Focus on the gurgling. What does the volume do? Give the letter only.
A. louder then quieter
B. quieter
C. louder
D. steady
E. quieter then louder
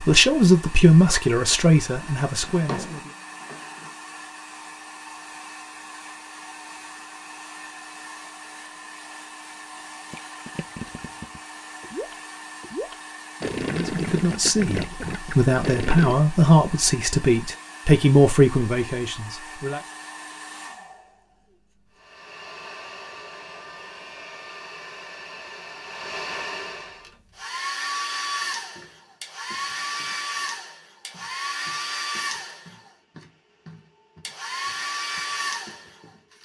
C.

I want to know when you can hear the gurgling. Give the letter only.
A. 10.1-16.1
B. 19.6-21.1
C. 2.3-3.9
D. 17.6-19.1
A.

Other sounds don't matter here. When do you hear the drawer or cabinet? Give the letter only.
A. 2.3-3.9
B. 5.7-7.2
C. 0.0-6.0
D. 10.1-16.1
A.